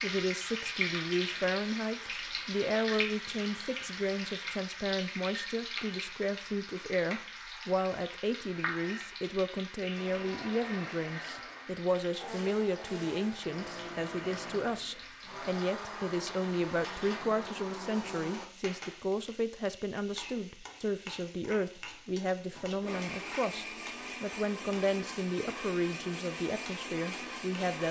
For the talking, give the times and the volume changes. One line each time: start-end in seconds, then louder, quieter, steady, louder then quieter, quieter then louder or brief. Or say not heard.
0.0-27.8 steady.